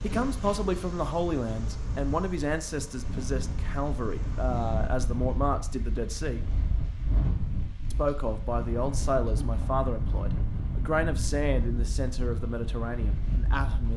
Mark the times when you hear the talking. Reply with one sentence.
The talking can be heard from 0.0 to 6.5 s and from 7.9 to 13.9 s.